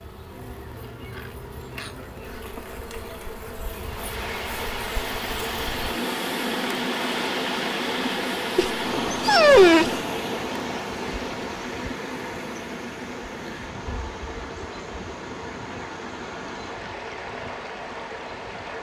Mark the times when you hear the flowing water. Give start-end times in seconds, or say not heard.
3.7-18.7.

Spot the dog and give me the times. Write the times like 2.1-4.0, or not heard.
8.6-9.9.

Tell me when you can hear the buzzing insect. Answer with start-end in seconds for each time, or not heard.
0.0-18.7.